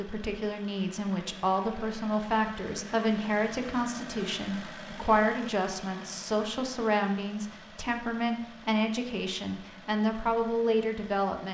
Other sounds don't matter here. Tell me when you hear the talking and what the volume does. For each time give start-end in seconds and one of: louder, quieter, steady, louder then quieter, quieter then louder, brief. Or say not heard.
0.0-11.4 steady.